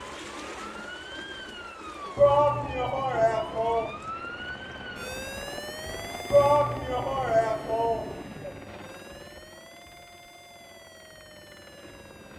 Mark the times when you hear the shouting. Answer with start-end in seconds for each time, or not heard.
2.1-4.0, 6.3-8.5.